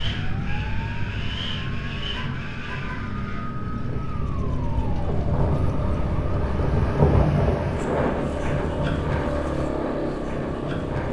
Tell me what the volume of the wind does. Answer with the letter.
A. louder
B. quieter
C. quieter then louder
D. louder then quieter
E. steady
D.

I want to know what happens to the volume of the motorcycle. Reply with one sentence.
The volume of the motorcycle goes up.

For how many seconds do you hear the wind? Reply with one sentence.
You can hear the wind for 11 seconds altogether.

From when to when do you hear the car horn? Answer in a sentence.
The car horn can be heard from 2.1 to 3.1 s.